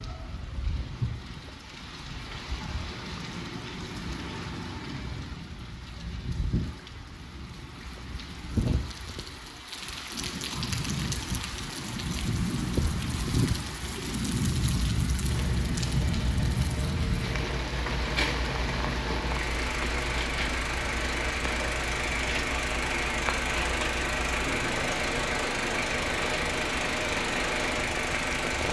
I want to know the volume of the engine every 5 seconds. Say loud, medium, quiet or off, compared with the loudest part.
off, off, off, medium, loud, loud.